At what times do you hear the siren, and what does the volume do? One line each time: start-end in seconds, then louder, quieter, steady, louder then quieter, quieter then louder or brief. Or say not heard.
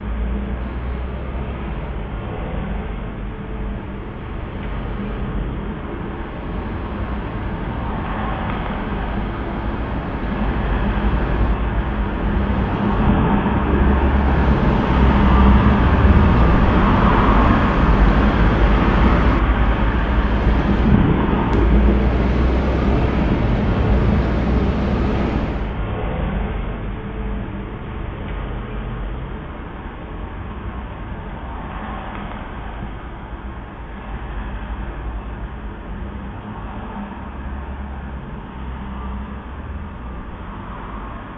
not heard.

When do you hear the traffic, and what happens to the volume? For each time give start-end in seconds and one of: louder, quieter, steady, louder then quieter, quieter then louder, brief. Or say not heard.
0.0-41.3 louder then quieter.